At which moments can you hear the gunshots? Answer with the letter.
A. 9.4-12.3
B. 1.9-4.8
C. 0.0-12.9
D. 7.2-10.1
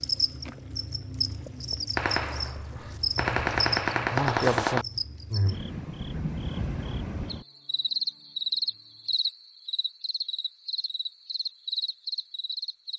B.